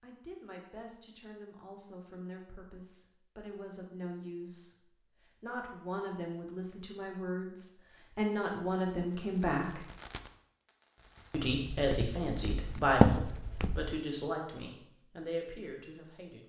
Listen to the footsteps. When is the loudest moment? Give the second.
13 s.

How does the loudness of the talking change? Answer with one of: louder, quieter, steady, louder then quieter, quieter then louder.
louder then quieter.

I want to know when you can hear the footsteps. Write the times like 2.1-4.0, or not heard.
11.4-14.0.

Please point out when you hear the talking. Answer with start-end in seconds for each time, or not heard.
0.0-4.8, 5.4-9.8, 11.3-16.4.